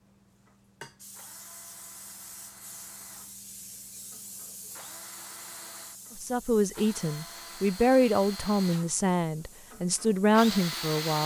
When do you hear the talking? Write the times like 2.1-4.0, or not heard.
6.2-11.2.